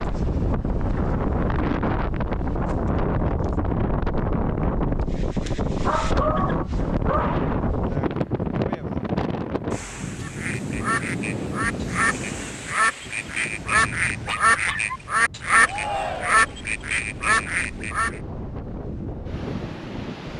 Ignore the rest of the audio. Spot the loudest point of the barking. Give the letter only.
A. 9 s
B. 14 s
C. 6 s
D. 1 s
C.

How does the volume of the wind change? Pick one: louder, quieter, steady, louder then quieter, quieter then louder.
quieter.